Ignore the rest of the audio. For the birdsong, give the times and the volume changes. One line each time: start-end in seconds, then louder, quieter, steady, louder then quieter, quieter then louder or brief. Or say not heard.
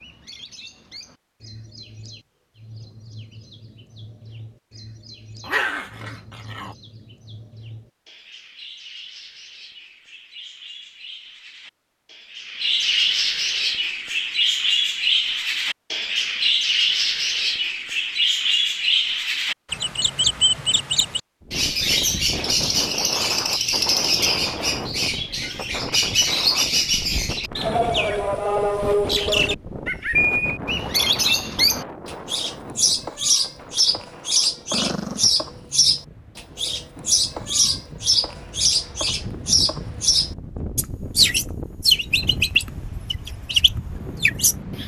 0.0-44.8 louder.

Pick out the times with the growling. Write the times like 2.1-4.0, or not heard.
5.4-6.8, 34.7-35.4.